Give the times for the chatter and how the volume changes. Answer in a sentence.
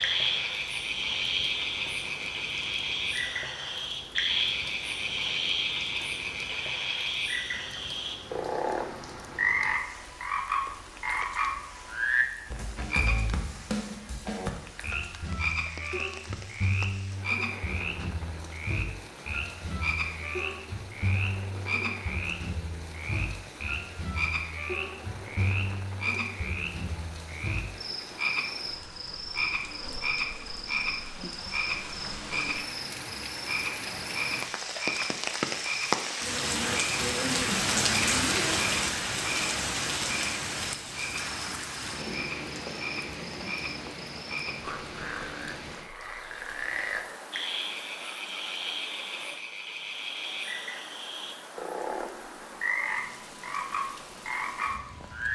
You can't hear the chatter here.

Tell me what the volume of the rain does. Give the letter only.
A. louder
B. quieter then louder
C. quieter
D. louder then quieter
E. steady
D.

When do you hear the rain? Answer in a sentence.
You can hear the rain from 0.0 to 55.3 s.